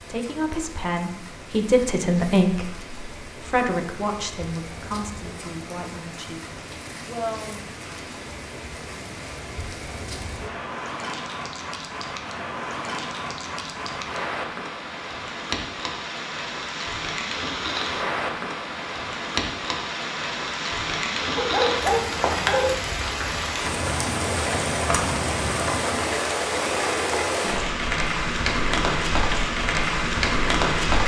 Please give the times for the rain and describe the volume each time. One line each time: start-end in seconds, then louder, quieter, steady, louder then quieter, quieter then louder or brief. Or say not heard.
0.0-31.0 louder.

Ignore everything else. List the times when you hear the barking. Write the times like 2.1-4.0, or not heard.
21.4-22.8.